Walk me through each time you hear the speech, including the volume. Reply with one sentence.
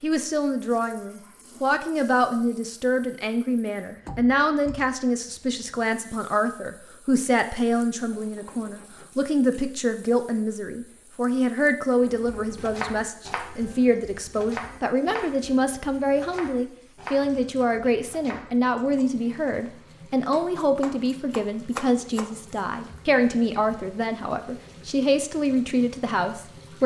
The speech can be heard from 0.0 to 26.8 s, at a steady volume.